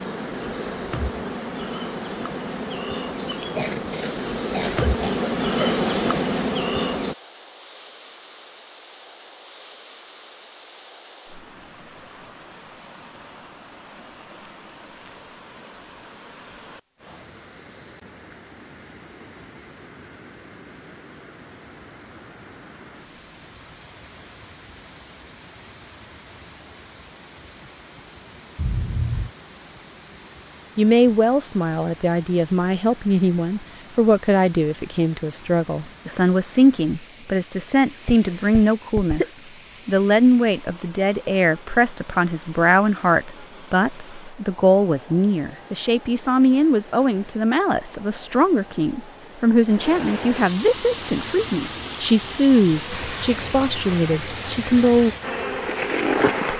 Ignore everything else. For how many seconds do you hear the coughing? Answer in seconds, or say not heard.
4 s.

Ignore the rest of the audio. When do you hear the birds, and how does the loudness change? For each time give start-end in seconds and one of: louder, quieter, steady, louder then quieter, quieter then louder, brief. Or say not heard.
not heard.